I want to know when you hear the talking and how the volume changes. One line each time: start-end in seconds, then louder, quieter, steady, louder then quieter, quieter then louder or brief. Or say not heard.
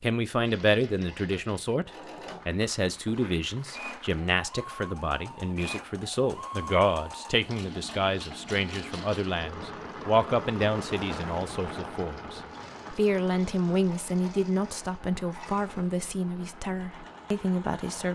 0.0-18.1 steady.